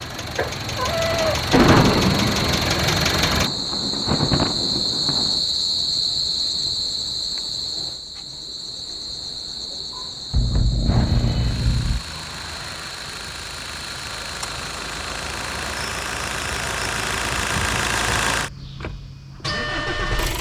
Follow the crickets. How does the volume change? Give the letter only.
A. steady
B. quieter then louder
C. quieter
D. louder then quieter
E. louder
D.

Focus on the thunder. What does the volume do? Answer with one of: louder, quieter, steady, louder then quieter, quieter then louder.
quieter then louder.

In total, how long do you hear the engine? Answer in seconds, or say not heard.
13 s.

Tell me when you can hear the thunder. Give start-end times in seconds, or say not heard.
1.1-5.4.